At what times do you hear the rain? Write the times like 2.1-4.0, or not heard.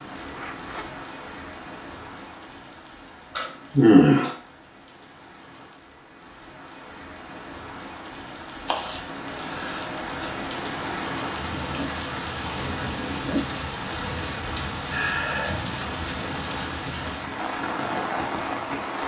0.0-19.0.